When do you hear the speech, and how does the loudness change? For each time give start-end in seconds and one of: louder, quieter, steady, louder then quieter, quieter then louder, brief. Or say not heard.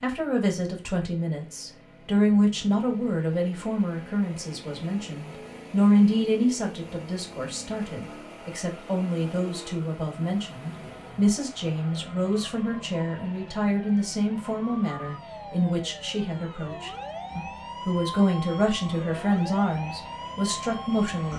0.0-21.3 steady.